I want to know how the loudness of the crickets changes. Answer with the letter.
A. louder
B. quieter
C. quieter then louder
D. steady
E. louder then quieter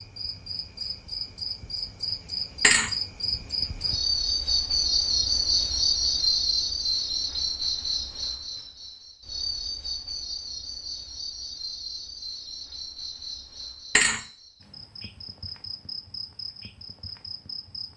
E.